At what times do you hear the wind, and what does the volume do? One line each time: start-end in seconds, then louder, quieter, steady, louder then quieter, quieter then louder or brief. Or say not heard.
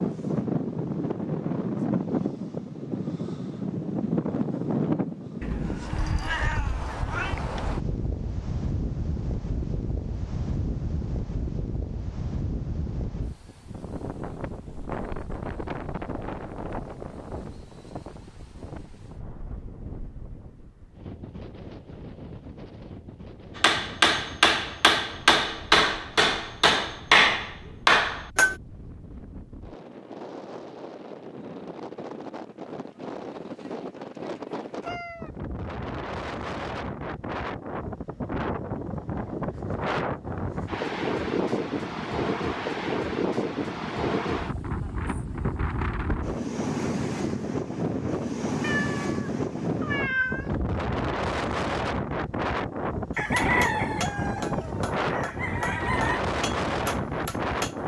0.0-57.8 quieter then louder.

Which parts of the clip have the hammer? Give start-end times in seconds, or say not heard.
23.6-28.6, 53.1-57.8.